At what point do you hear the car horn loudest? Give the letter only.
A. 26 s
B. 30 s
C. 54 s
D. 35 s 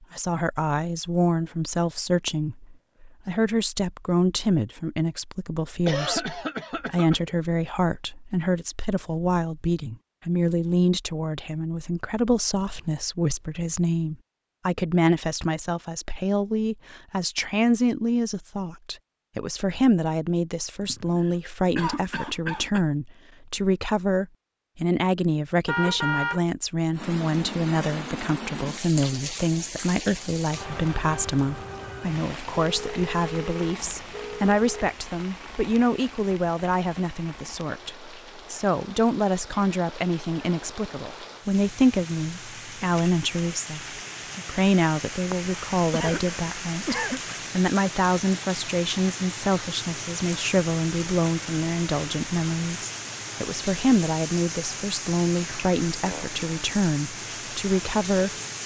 A.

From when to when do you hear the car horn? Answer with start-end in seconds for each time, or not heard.
25.6-26.4, 32.6-35.0.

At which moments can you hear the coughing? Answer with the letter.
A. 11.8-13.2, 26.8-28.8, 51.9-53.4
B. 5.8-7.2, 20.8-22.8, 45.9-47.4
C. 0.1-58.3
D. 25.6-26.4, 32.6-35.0
B.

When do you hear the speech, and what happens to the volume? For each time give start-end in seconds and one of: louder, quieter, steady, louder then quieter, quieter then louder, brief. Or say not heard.
0.1-58.3 steady.